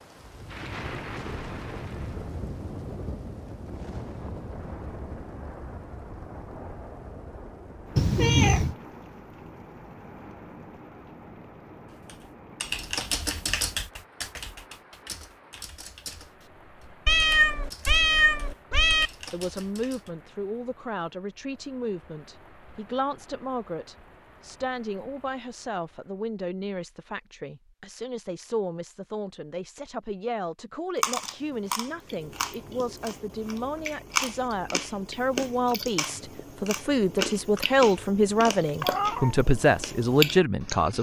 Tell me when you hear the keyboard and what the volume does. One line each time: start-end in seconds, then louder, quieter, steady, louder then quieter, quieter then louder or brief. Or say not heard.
11.8-20.1 quieter.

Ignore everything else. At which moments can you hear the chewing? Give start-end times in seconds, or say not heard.
31.0-40.9.